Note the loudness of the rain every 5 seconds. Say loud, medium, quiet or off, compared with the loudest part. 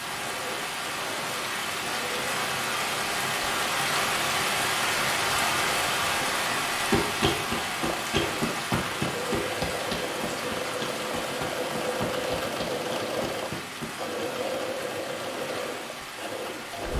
loud, loud, medium, medium.